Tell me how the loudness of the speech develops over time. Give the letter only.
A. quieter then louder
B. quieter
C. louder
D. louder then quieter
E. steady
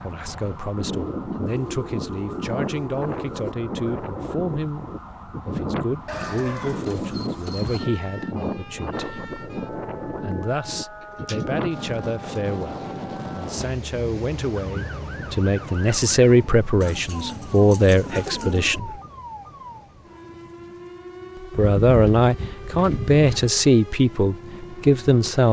C.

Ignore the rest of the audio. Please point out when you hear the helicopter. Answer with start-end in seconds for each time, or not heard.
not heard.